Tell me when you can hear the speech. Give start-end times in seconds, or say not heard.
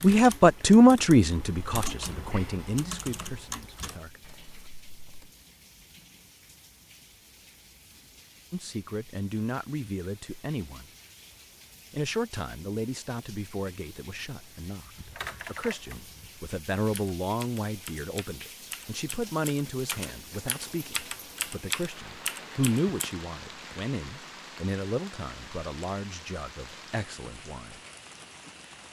0.0-4.2, 8.5-10.8, 11.9-27.8.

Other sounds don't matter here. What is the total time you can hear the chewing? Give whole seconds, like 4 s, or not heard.
not heard.